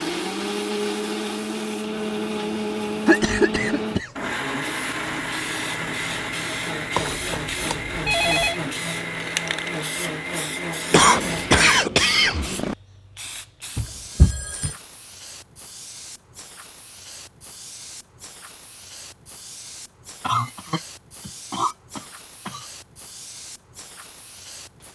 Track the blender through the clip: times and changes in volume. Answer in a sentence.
The blender can be heard from 0.0 to 11.8 s, at a steady volume.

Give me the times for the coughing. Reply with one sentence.
You can hear the coughing from 3.0 to 4.1 s, from 10.9 to 12.8 s and from 20.2 to 22.6 s.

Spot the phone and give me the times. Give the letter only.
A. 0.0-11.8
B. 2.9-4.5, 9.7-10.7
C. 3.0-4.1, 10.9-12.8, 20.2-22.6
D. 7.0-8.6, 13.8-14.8
D.